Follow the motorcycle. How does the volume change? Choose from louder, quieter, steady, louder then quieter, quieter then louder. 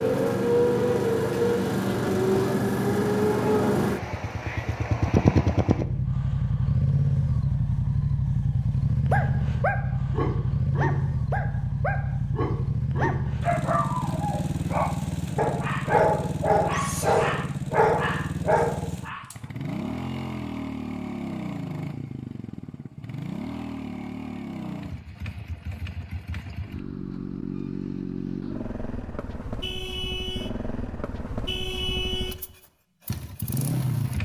quieter.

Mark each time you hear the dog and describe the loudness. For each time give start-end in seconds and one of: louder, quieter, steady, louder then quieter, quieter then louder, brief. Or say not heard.
8.9-19.4 louder.